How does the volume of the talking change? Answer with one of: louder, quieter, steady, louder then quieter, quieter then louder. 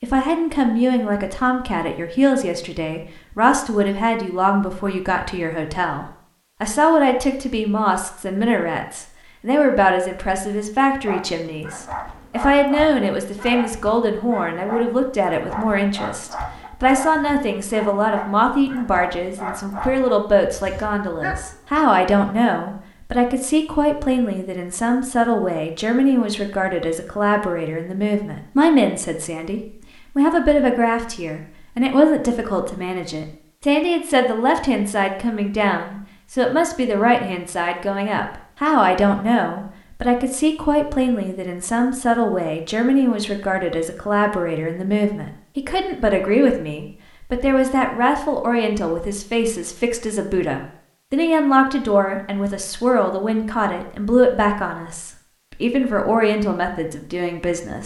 steady.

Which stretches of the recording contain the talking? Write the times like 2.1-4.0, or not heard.
0.0-57.8.